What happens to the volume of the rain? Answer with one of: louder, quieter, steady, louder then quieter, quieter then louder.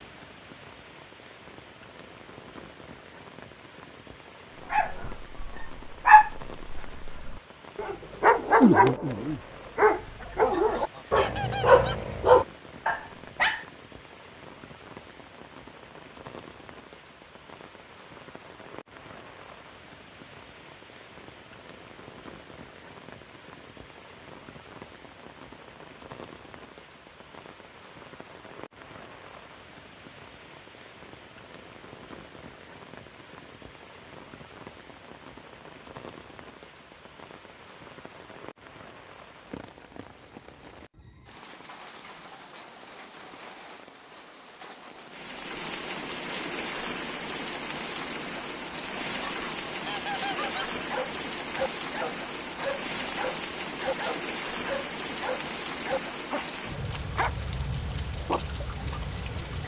louder.